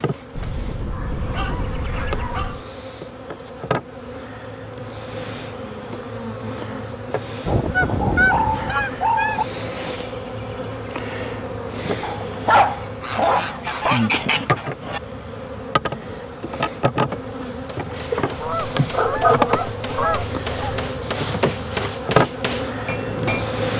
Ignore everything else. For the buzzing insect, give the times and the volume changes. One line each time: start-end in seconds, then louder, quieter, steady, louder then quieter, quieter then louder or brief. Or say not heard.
0.0-23.7 louder.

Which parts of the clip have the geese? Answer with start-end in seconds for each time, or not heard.
0.3-2.6, 7.5-9.4, 13.0-15.0, 18.4-20.8.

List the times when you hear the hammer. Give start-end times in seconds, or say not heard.
17.5-23.4.